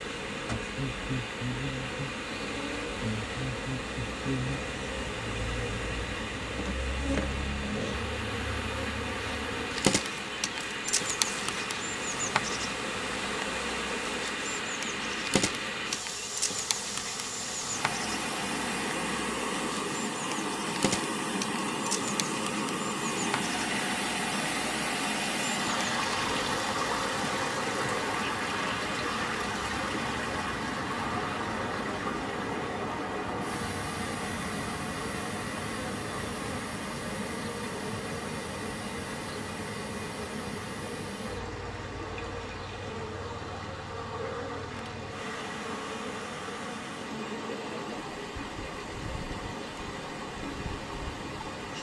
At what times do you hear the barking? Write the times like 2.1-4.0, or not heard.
not heard.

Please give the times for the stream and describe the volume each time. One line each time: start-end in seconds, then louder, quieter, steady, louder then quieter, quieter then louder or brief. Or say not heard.
0.0-51.7 louder then quieter.